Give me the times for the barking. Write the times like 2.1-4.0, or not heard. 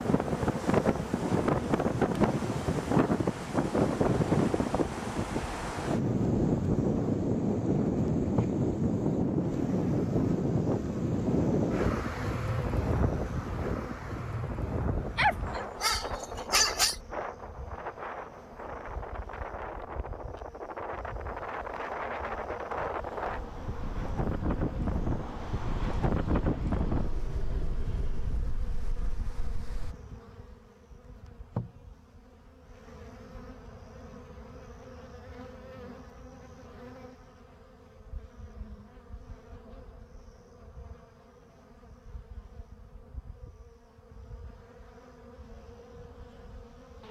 15.2-16.9.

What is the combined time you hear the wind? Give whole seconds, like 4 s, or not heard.
30 s.